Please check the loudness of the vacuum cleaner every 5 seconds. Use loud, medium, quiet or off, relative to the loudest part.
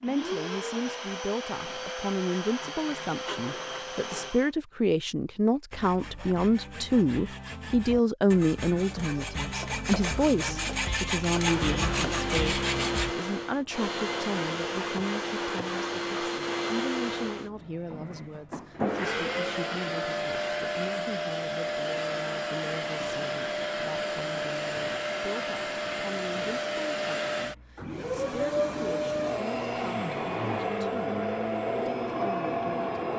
medium, off, loud, loud, loud, loud, loud.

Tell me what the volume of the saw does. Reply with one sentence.
The volume of the saw goes up.